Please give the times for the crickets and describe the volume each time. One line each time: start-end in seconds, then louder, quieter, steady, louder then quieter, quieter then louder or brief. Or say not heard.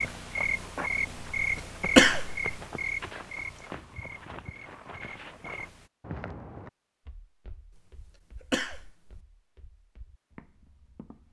0.0-5.9 quieter.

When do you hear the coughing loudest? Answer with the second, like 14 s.
2 s.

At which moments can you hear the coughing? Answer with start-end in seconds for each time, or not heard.
1.9-2.4, 7.8-9.2.